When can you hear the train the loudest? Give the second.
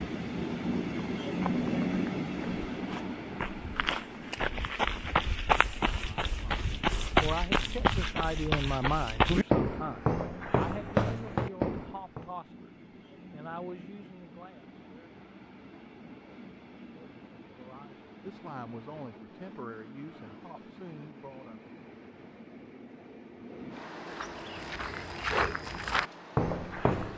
2 s.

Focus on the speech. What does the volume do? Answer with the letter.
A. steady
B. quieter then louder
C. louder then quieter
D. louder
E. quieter
E.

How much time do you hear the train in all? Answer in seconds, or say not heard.
27 s.